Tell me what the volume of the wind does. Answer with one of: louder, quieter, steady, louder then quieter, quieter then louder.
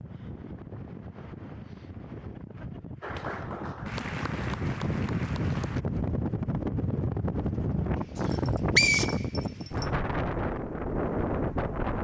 louder.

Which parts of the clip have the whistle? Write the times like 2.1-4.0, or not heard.
8.2-9.8.